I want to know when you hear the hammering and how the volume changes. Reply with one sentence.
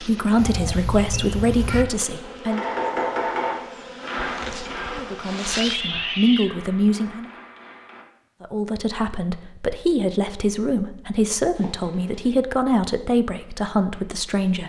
You can hear the hammering from 2.5 to 8.1 s, getting quieter.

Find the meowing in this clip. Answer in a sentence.
The meowing can be heard from 0.3 to 1.9 s, from 5.6 to 6.6 s and from 11.6 to 12.3 s.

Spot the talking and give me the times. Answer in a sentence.
You can hear the talking from 0.0 to 2.6 s, from 5.0 to 7.3 s and from 8.4 to 14.6 s.